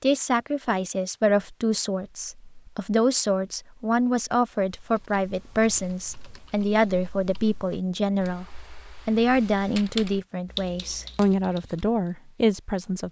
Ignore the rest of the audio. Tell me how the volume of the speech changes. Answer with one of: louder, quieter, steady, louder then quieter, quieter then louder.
steady.